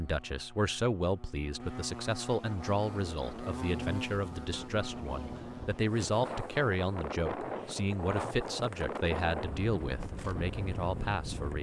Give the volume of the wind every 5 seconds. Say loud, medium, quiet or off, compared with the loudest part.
medium, loud, loud.